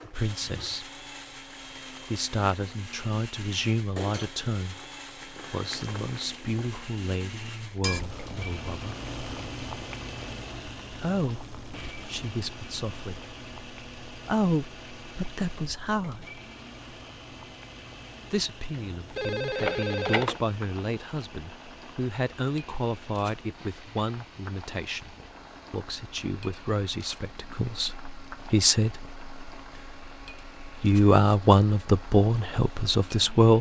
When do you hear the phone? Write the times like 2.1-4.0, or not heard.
18.9-20.4.